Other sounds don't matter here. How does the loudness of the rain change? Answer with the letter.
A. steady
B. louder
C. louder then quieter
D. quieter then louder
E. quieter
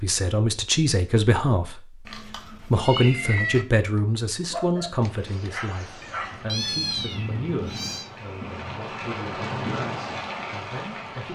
B.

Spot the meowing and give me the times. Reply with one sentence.
You can hear the meowing from 2.0 to 3.6 s and from 6.0 to 8.1 s.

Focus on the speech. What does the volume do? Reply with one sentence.
The loudness of the speech goes down.